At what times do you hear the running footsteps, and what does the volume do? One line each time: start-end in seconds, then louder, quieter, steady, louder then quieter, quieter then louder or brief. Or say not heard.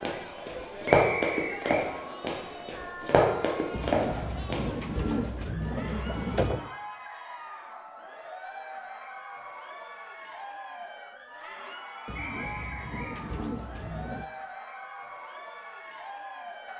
0.0-4.6 quieter then louder.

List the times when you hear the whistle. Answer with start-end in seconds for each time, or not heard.
0.8-1.9, 12.2-13.2.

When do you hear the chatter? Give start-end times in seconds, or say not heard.
0.0-16.7.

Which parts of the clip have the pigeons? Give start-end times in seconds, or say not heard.
3.7-6.7, 12.1-14.2.